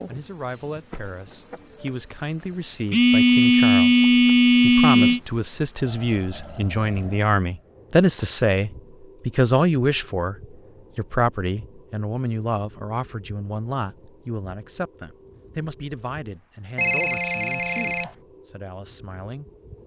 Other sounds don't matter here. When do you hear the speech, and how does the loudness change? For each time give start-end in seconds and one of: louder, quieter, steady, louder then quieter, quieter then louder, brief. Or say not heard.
0.1-19.4 louder then quieter.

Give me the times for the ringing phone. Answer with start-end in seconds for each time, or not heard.
2.9-5.2, 16.8-18.1.